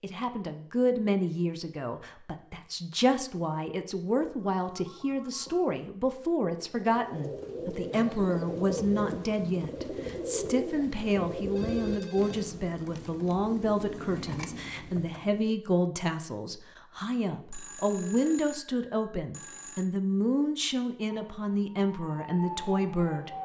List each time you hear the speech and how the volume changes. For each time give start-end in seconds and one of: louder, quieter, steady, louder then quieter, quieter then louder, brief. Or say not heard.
0.0-23.3 steady.